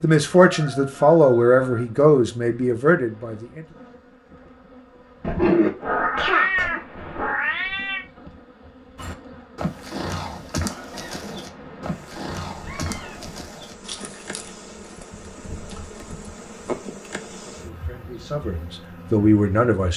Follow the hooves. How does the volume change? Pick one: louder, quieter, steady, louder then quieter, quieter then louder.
quieter.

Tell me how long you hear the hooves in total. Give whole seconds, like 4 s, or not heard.
8 s.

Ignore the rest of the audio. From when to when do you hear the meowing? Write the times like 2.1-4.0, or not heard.
5.2-8.1, 10.9-13.2.